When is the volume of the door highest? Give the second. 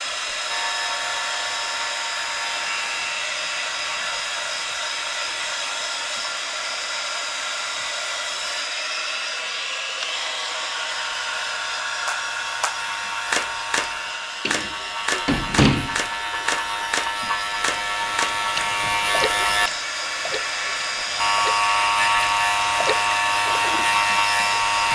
16 s.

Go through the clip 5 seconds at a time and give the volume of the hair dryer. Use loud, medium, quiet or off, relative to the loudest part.
loud, loud, loud, medium, loud.